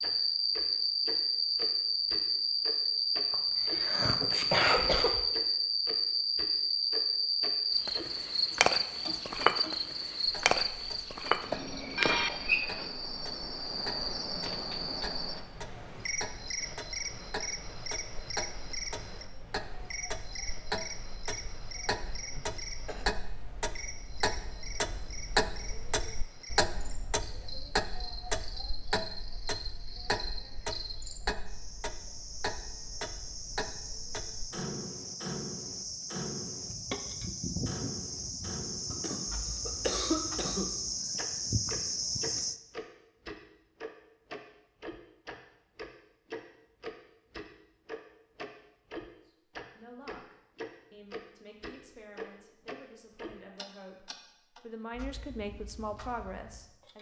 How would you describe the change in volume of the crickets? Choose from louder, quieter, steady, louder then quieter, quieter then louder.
quieter then louder.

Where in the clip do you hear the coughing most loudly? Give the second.
5 s.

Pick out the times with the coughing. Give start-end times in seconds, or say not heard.
3.3-5.2, 22.4-23.1, 38.9-40.7.